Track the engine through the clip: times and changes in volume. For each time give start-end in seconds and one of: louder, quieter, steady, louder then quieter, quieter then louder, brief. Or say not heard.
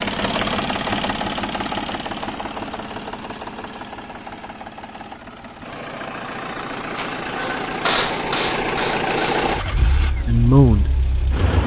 0.0-11.6 quieter then louder.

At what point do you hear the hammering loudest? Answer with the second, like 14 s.
8 s.